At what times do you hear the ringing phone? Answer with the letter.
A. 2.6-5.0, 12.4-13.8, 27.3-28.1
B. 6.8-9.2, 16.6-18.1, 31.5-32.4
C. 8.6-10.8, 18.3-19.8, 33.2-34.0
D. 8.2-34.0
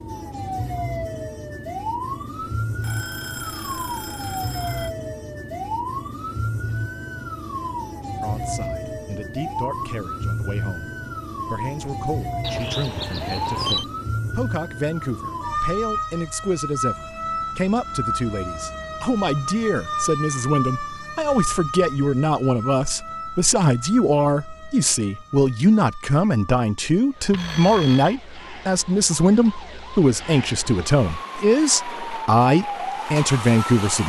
A.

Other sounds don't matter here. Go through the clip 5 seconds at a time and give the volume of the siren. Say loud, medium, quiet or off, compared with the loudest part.
loud, loud, loud, loud, loud, quiet, loud.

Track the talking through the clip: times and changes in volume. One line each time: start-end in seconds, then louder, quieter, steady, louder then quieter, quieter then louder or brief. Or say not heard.
8.2-34.0 louder.